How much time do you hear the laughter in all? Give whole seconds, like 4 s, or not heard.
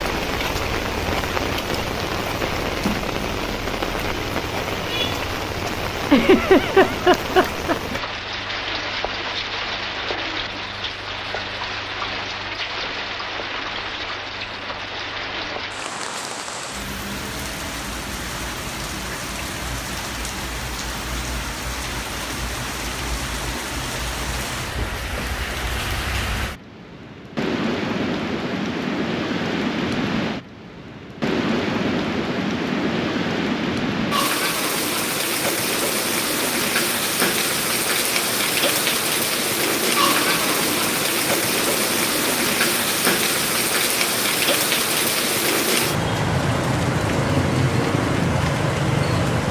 2 s.